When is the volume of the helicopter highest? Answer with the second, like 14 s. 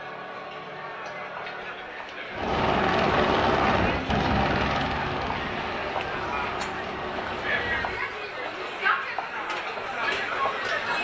3 s.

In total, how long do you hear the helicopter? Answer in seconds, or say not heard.
6 s.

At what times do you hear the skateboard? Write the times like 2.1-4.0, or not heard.
not heard.